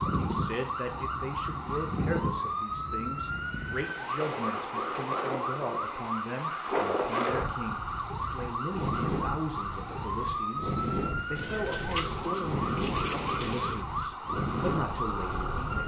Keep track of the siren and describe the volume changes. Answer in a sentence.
The volume of the siren stays about the same.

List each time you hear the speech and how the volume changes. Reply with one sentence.
The speech can be heard from 0.1 to 15.8 s, at a steady volume.